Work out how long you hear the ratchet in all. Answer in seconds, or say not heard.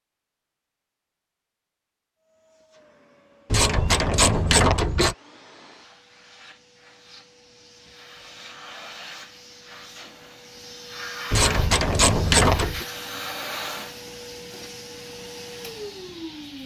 3 s.